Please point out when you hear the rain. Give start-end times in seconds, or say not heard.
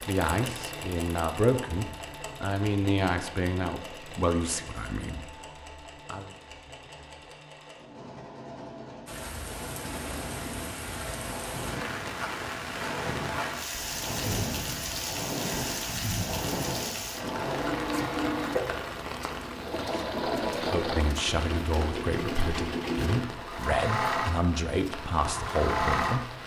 9.1-26.4.